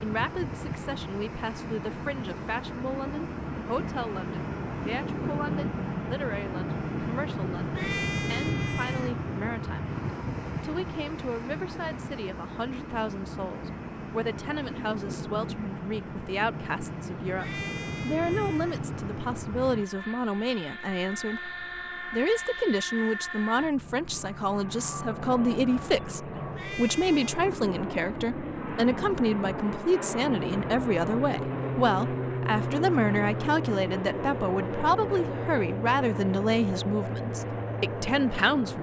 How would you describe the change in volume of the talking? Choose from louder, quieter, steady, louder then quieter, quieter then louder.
louder.